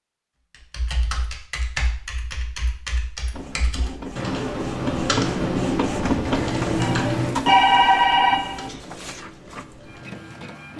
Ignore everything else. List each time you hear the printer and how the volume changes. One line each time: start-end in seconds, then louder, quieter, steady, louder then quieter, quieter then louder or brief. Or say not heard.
3.3-10.7 louder then quieter.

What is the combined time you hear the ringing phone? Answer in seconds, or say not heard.
2 s.